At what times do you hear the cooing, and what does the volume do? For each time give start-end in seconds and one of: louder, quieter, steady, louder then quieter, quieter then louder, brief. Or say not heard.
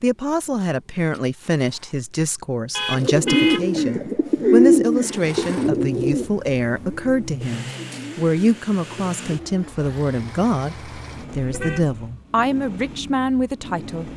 3.0-9.8 quieter.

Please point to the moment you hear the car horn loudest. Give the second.
3 s.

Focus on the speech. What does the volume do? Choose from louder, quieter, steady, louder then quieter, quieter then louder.
steady.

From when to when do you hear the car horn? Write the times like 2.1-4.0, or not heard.
2.7-3.9, 11.3-12.2.